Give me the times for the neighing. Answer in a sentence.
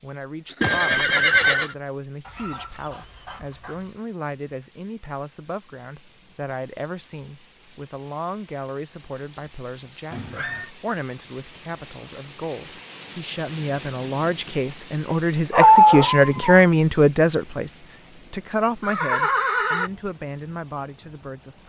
The neighing can be heard from 0.6 to 1.8 s, from 10.1 to 10.7 s and from 18.8 to 19.9 s.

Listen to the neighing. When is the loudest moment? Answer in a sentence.
The loudest moment of the neighing is at 1 second.